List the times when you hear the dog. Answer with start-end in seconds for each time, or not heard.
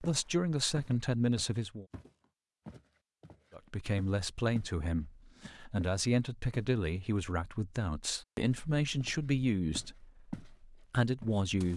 not heard.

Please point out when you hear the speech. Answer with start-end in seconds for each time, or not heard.
0.0-1.9, 3.5-11.7.